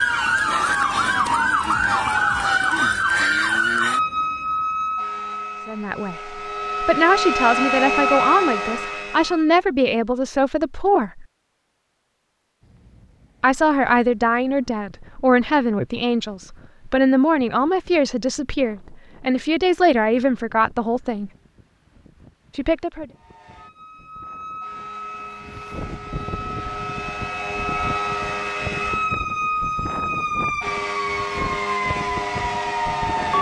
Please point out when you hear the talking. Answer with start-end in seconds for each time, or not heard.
5.7-11.2, 13.4-21.3, 22.6-23.1.